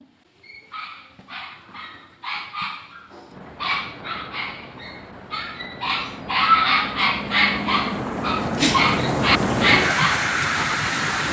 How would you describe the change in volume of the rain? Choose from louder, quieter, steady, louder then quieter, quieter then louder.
louder.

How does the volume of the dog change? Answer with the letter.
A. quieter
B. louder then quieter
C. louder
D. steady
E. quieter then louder
C.